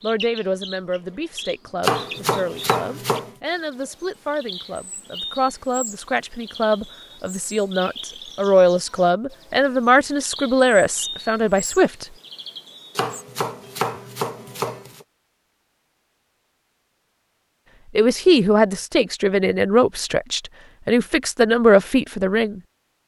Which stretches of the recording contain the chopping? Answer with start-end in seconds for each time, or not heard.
1.8-3.3, 12.9-15.1.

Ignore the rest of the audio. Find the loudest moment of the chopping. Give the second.
2 s.